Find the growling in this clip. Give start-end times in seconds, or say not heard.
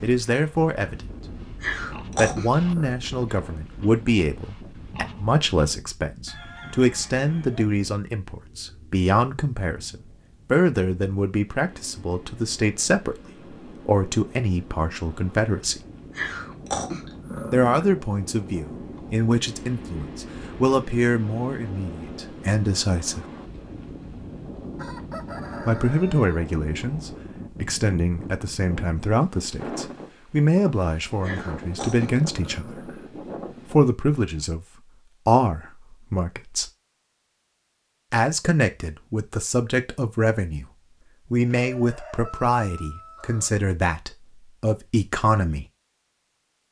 1.6-3.0, 16.1-17.9, 31.2-33.0.